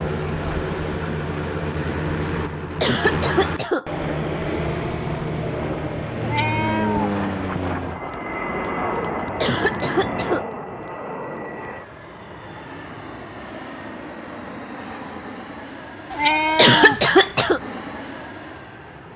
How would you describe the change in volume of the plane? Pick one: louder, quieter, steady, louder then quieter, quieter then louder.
quieter.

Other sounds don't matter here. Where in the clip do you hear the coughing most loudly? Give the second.
17 s.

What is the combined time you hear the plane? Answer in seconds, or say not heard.
19 s.